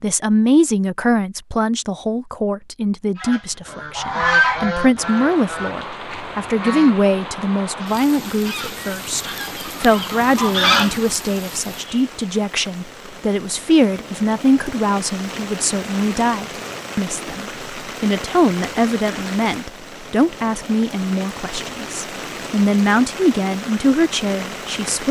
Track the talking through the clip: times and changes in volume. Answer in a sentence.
You can hear the talking from 0.0 to 25.0 s, at a steady volume.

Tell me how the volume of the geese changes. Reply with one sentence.
The volume of the geese goes down, then up.